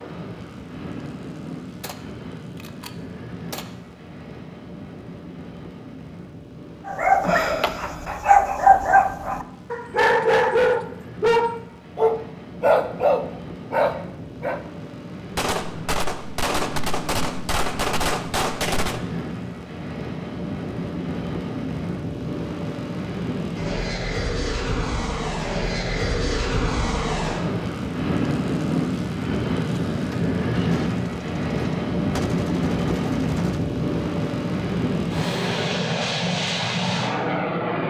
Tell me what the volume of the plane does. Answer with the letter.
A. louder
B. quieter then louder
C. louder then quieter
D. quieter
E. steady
A.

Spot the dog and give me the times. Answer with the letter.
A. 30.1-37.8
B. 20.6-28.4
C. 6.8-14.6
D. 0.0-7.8
C.